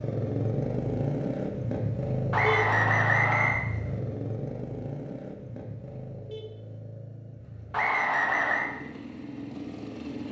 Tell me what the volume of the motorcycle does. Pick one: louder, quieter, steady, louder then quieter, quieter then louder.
quieter.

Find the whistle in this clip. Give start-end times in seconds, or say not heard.
2.3-3.6, 7.7-8.7.